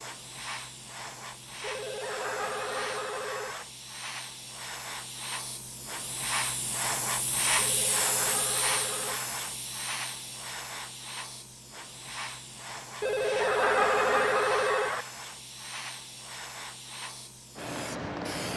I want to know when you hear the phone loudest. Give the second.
14 s.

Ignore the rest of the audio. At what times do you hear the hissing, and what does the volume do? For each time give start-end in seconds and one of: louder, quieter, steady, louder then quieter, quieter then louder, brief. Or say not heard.
0.0-18.5 louder then quieter.